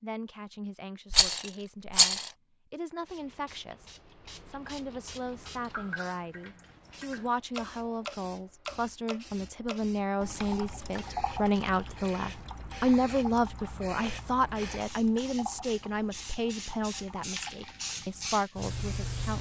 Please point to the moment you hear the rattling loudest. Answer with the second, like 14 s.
2 s.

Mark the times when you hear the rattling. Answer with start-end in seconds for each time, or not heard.
1.1-2.3, 11.4-12.0.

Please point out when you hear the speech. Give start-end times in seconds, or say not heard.
0.0-19.3.